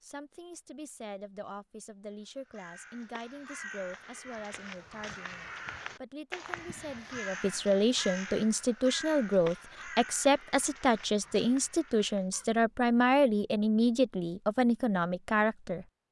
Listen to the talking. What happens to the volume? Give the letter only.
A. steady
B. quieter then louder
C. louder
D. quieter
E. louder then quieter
C.